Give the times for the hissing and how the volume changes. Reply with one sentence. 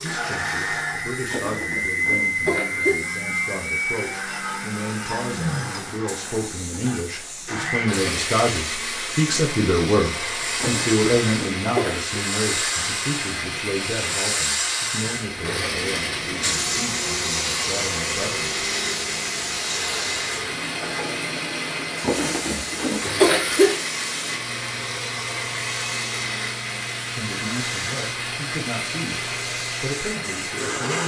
You can hear the hissing from 0.0 to 31.0 s, getting louder then quieter.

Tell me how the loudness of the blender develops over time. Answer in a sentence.
The loudness of the blender stays about the same.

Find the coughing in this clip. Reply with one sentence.
The coughing can be heard from 1.3 to 3.0 s, from 10.6 to 12.2 s and from 22.0 to 23.8 s.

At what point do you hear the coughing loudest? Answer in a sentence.
The volume of the coughing peaks at 23 seconds.